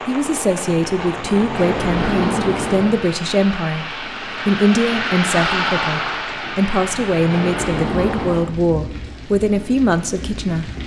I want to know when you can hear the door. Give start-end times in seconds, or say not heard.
0.2-3.0, 6.2-8.5.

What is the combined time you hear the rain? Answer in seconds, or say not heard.
11 s.